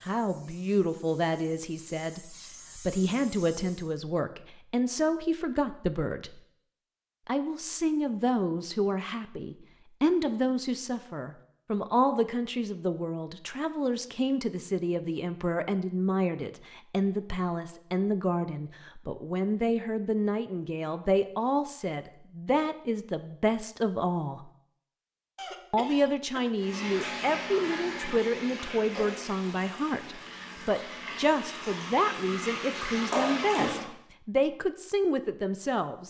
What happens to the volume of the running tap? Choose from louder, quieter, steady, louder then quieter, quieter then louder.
quieter then louder.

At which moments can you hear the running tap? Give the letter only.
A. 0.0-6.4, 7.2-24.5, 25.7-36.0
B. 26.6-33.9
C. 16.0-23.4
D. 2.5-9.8
B.